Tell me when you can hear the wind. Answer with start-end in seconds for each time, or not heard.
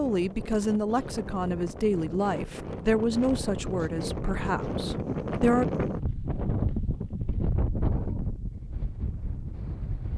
0.0-10.1.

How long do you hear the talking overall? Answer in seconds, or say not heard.
6 s.